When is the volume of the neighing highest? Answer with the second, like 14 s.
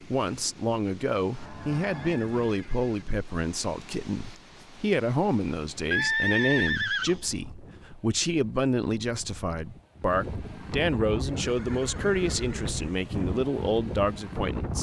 6 s.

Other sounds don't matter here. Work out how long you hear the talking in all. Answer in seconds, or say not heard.
15 s.